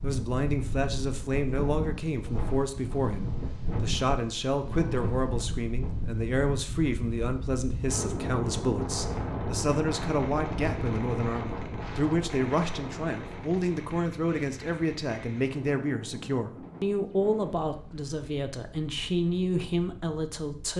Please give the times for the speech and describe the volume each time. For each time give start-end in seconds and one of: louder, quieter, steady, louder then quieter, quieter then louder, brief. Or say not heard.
0.0-20.7 steady.